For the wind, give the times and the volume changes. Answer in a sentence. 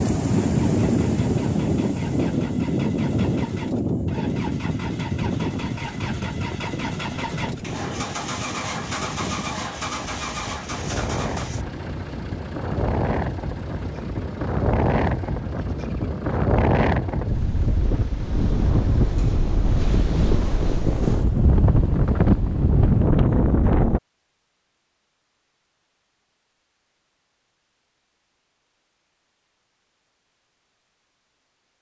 The wind can be heard from 0.0 to 24.0 s, getting quieter then louder.